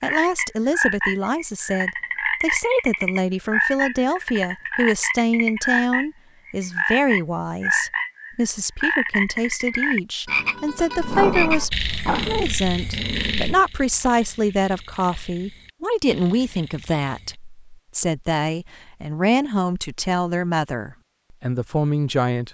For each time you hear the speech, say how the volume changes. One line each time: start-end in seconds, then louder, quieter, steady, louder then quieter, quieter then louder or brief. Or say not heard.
0.0-22.4 steady.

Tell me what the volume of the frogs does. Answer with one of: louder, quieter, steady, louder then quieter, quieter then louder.
quieter.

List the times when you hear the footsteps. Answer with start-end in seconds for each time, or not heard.
not heard.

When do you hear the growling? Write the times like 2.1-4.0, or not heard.
10.9-13.6.